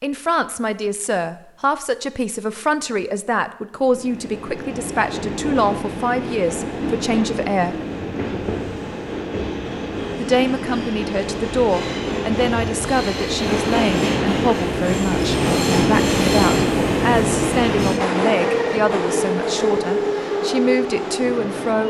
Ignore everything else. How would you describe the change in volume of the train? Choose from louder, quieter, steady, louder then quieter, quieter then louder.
louder.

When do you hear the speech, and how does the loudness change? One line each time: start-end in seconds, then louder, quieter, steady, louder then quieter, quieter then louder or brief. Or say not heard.
0.0-7.8 steady
10.2-21.8 steady.